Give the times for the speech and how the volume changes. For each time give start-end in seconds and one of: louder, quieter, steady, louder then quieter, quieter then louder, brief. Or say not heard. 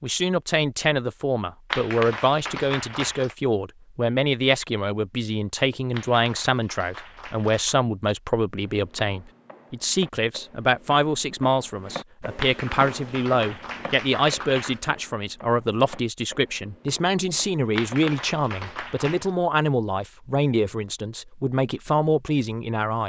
0.0-23.0 steady.